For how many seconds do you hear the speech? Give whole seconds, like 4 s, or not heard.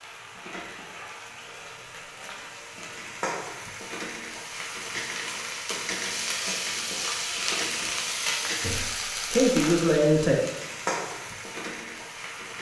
2 s.